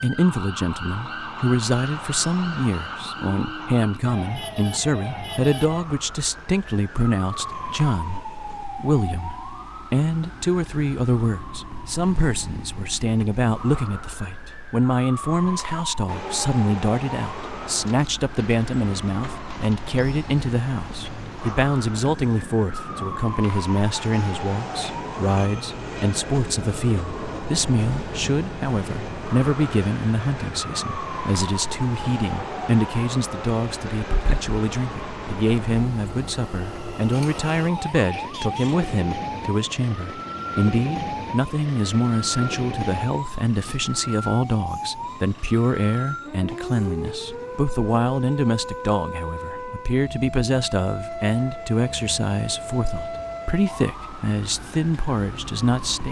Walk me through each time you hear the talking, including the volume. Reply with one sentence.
The talking can be heard from 0.0 to 56.0 s, at a steady volume.